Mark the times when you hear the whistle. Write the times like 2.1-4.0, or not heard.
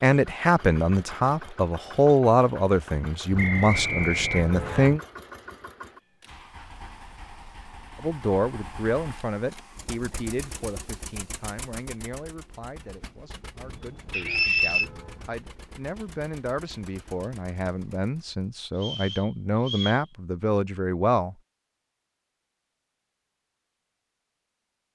3.4-4.9, 14.1-14.8, 18.8-20.1.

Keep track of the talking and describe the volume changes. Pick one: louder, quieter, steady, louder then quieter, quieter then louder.
quieter then louder.